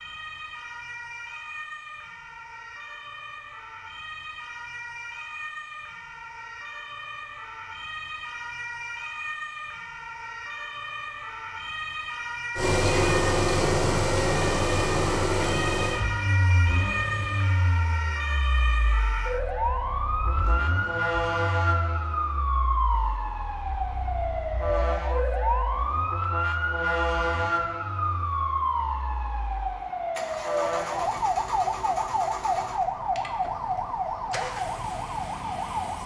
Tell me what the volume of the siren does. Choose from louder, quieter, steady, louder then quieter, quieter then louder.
louder.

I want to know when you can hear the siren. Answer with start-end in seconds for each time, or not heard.
0.0-36.0.